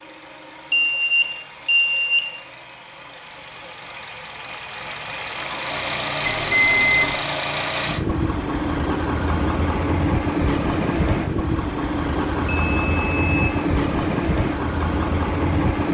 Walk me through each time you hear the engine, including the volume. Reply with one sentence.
You can hear the engine from 0.0 to 15.8 s, getting louder.